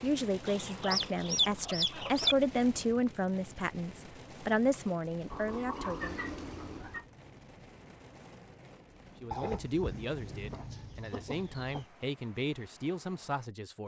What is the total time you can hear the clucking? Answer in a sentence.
You can hear the clucking for 6 seconds altogether.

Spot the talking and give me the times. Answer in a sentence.
You can hear the talking from 0.0 to 6.3 s and from 9.2 to 13.8 s.